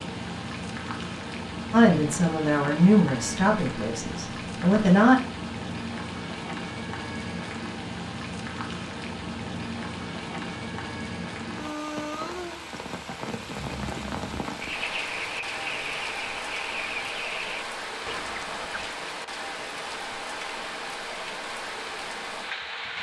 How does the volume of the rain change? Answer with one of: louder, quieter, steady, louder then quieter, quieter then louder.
steady.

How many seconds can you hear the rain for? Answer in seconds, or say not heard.
23 s.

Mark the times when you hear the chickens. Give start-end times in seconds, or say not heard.
13.4-18.9.